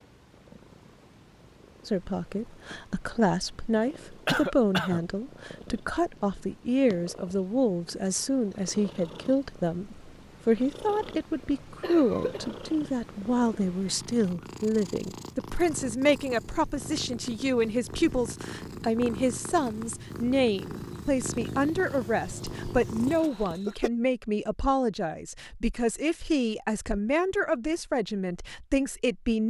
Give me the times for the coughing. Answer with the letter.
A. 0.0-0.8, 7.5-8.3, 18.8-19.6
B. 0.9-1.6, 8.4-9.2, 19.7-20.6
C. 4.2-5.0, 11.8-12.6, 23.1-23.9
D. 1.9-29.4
C.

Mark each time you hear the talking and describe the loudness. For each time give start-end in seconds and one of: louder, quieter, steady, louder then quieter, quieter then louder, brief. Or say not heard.
1.9-29.4 steady.